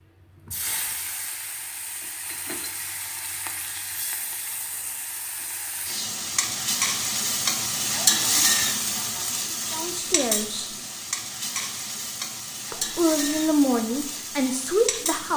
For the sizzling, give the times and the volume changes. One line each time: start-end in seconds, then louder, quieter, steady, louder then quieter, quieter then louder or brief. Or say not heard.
0.2-15.3 louder then quieter.